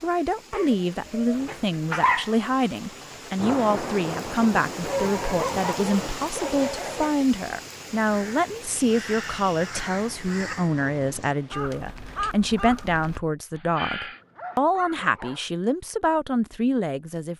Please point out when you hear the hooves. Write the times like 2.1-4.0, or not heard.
not heard.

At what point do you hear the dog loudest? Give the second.
2 s.